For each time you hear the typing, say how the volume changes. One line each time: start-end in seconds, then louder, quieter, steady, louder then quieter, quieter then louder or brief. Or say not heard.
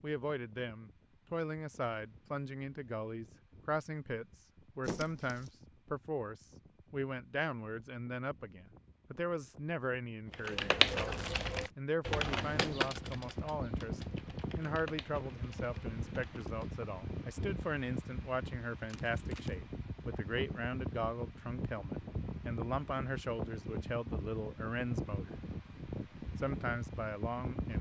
10.3-16.7 quieter.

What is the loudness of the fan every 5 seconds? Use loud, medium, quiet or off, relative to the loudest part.
quiet, quiet, loud, loud, loud, loud.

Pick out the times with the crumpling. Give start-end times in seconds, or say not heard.
4.8-5.5, 10.8-11.7, 18.9-19.6.